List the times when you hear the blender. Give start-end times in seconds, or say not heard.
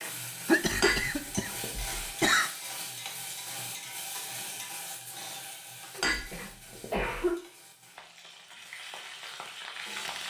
not heard.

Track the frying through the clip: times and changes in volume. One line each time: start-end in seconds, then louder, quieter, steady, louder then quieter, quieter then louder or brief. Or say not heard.
0.0-10.2 quieter then louder.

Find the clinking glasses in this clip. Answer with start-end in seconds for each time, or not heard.
0.8-2.0, 6.0-7.2.